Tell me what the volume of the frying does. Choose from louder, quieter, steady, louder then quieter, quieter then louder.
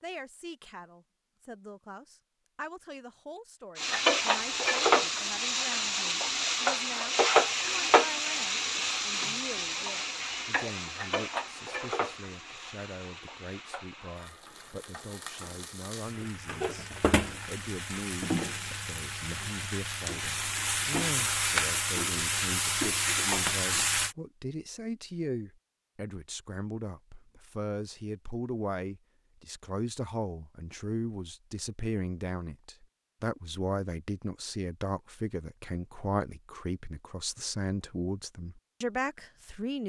quieter then louder.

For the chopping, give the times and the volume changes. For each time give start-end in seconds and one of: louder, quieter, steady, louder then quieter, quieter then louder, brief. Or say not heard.
not heard.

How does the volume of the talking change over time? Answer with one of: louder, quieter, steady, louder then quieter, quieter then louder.
louder.